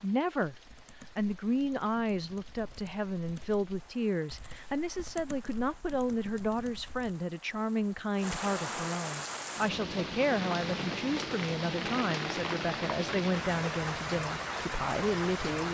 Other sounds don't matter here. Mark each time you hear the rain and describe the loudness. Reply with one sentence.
You can hear the rain from 0.0 to 15.6 s, getting louder.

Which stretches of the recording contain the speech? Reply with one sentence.
The speech can be heard from 0.0 to 0.6 s and from 1.1 to 15.6 s.